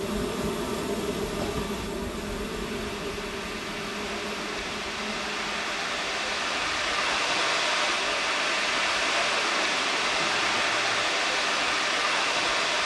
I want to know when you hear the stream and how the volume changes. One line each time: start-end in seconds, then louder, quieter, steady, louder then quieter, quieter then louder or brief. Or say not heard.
0.1-12.8 louder.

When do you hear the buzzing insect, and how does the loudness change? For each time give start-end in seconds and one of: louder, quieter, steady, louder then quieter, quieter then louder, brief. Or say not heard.
0.0-12.8 quieter.